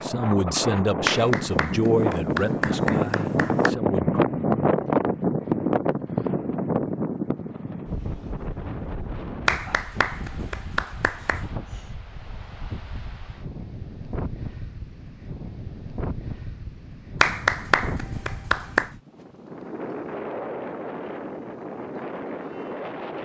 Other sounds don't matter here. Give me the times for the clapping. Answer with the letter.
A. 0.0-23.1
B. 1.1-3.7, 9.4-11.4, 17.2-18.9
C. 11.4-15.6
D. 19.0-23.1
B.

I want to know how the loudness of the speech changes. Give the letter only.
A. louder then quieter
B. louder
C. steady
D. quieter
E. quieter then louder
D.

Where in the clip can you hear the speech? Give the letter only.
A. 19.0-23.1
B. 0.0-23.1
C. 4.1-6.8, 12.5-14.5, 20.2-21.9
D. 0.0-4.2
D.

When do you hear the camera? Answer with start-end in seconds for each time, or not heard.
not heard.